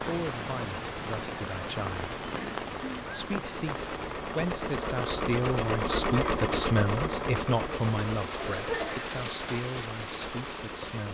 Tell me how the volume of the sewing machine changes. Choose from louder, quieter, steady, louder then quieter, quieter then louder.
louder then quieter.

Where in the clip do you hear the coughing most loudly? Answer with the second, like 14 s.
9 s.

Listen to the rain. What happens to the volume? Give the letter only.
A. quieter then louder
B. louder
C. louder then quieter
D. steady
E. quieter
D.